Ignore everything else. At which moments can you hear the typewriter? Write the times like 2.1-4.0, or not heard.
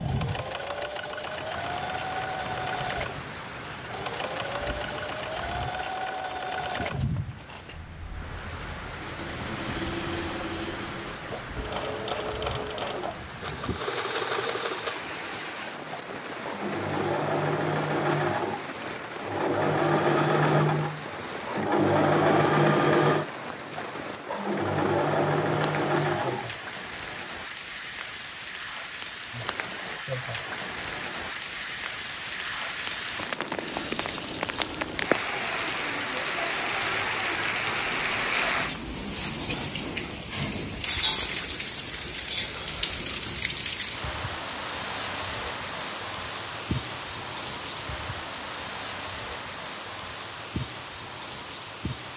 not heard.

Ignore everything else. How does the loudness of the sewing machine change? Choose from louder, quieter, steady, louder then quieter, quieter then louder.
louder.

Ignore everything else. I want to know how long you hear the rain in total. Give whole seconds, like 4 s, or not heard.
52 s.